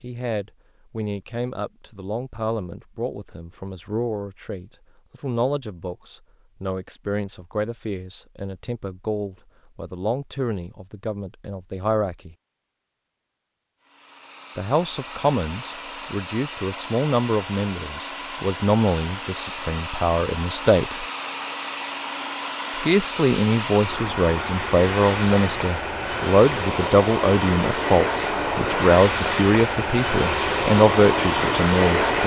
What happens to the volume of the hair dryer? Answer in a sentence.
The volume of the hair dryer goes up.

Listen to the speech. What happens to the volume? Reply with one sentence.
The loudness of the speech goes up.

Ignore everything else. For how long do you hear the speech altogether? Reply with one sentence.
You can hear the speech for 28 seconds altogether.